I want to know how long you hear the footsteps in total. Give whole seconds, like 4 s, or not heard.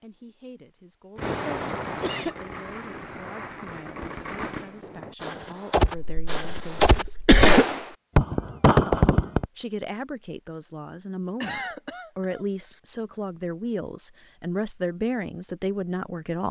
not heard.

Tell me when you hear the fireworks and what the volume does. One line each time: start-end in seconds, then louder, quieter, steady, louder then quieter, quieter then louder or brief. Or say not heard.
1.1-9.4 louder.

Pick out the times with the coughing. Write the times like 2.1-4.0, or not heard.
1.4-2.4, 6.0-7.7, 11.4-12.4.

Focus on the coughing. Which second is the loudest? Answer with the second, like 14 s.
7 s.